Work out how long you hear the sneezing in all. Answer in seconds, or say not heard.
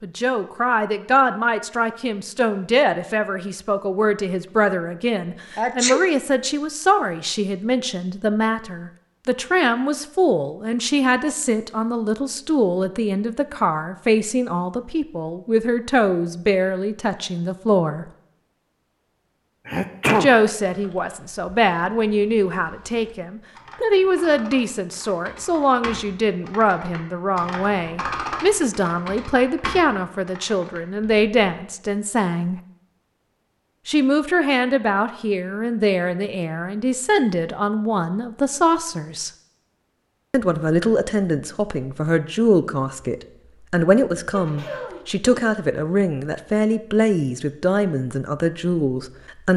2 s.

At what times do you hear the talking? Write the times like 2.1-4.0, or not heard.
0.0-18.1, 20.1-32.6, 33.9-39.3, 40.3-49.5.